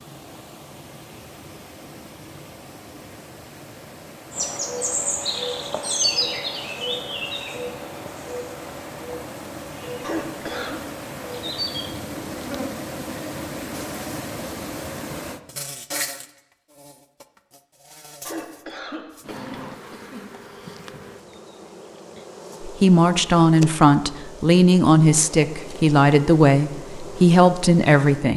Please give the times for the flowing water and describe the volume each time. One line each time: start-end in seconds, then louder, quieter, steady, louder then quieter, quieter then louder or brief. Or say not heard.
0.0-15.4 louder.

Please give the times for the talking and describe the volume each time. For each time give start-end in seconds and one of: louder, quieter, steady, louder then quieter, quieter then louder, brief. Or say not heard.
22.6-28.3 steady.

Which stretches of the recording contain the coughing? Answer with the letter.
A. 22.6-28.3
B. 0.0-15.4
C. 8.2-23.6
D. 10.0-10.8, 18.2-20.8
D.